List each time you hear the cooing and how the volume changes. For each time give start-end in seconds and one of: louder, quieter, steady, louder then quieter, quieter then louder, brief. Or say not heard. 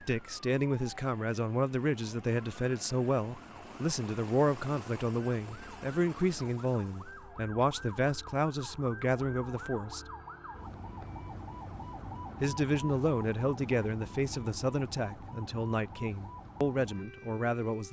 not heard.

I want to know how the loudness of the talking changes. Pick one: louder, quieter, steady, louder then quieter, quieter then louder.
steady.